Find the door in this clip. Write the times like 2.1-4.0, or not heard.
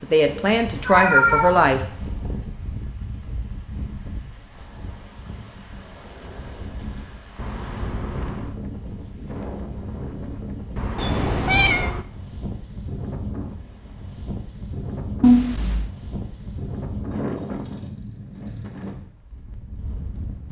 7.3-8.6, 10.8-12.1.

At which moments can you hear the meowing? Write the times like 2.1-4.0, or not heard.
0.8-1.6, 10.9-11.9, 15.2-15.9.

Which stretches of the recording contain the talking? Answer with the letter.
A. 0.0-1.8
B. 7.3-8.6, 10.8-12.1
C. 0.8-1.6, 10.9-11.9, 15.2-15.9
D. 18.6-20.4
A.